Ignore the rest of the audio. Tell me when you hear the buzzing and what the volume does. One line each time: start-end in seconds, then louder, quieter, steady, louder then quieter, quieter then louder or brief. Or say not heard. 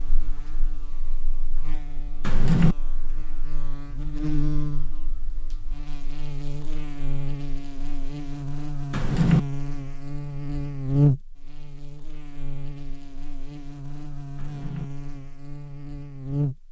0.0-16.6 louder then quieter.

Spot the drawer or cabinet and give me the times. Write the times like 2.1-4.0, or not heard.
2.2-2.8, 8.9-9.4, 14.3-14.8.